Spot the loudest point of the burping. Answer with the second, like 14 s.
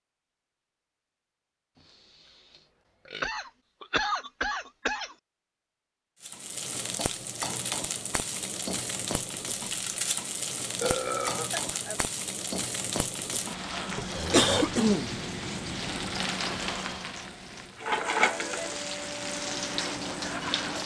11 s.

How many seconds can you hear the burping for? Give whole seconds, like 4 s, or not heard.
3 s.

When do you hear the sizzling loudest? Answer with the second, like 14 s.
18 s.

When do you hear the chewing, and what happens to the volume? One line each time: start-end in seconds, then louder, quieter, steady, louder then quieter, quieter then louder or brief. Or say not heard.
not heard.